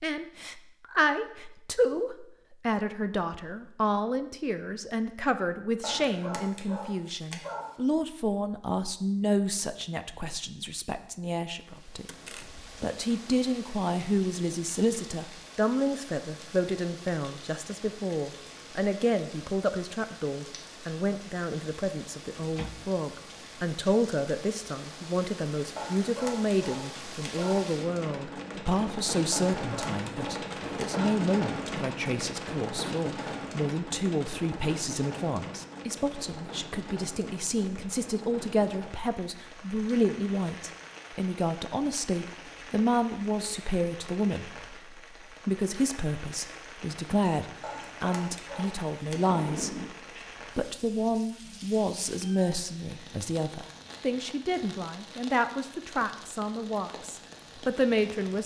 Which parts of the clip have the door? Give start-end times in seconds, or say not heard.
12.1-12.7, 22.3-22.9, 49.1-49.9.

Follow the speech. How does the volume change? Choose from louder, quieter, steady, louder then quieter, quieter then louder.
steady.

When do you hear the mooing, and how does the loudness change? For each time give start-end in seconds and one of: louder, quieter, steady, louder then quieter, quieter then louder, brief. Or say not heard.
not heard.